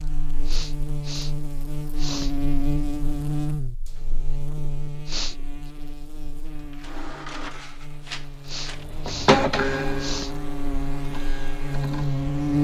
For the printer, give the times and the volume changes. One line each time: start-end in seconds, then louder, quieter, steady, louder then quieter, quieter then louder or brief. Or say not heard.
6.5-12.5 louder then quieter.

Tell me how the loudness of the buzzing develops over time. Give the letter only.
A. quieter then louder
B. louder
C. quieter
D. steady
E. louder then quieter
A.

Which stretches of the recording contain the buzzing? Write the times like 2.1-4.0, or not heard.
0.0-12.5.